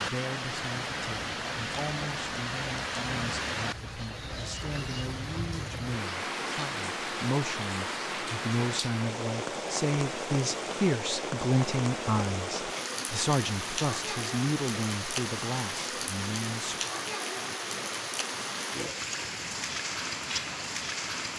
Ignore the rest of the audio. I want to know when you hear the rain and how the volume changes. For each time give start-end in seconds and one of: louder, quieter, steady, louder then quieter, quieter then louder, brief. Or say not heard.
0.0-21.3 steady.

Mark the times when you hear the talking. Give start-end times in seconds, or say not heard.
0.1-16.8.